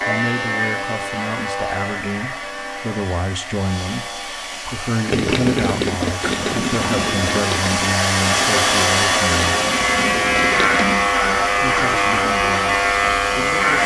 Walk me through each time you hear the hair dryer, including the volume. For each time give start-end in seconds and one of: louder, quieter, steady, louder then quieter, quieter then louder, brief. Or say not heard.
0.0-13.8 louder then quieter.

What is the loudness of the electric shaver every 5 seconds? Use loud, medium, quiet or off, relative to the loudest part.
medium, medium, loud.